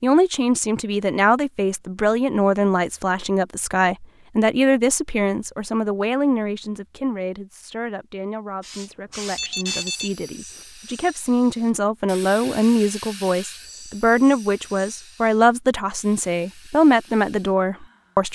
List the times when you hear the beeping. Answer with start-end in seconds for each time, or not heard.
9.3-10.2.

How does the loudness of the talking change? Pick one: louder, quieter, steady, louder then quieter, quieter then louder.
quieter then louder.